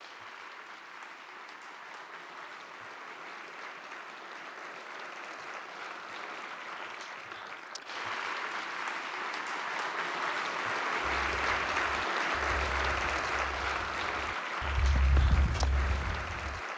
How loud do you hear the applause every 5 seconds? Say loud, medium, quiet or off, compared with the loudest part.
quiet, medium, loud, medium.